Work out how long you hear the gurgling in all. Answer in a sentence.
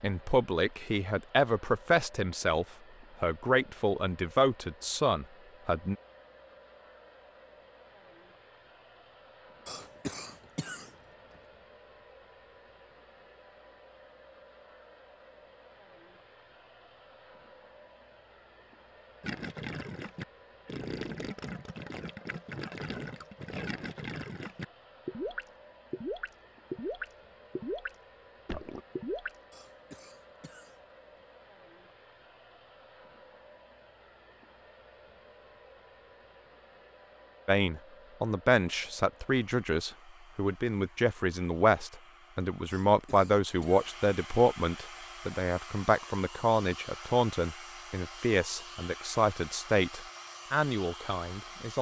You can hear the gurgling for 10 seconds altogether.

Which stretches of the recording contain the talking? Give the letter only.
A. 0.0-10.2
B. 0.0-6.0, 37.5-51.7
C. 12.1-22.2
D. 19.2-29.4
B.